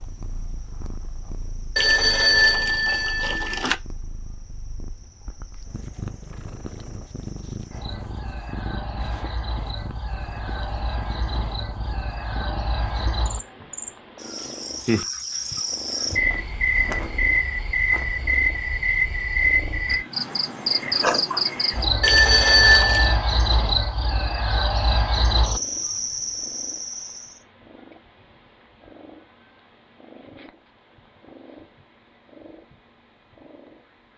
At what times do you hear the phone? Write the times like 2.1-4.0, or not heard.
1.8-3.8, 22.0-23.1.